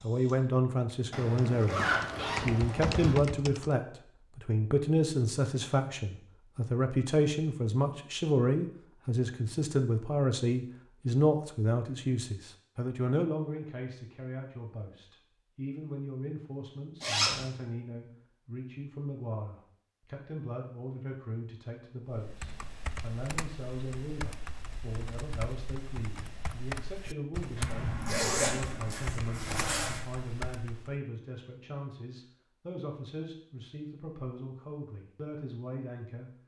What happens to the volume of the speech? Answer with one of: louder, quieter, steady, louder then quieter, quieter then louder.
quieter.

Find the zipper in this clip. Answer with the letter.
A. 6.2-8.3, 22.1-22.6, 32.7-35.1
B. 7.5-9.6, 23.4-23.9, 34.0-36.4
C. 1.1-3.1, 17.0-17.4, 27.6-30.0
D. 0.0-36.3
C.